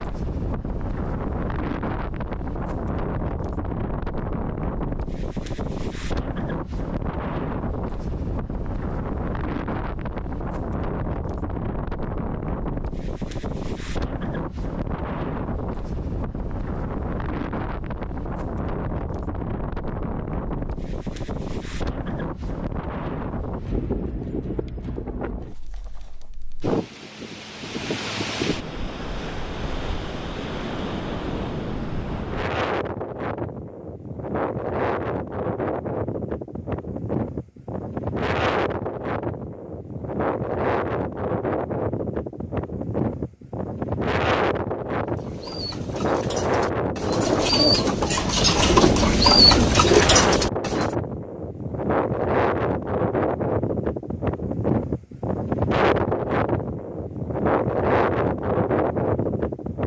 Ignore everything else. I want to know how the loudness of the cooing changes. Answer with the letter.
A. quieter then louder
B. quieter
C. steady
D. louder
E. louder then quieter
D.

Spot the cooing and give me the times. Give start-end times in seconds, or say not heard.
45.1-50.9.